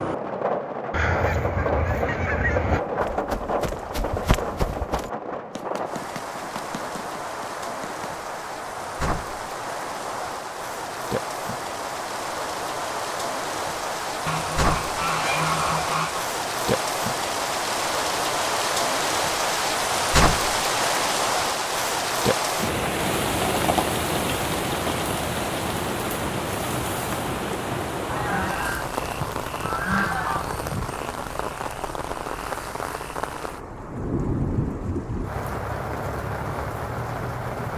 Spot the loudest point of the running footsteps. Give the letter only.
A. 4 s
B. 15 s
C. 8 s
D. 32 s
A.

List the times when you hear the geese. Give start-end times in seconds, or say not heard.
0.9-2.8, 14.2-16.2, 28.1-30.9.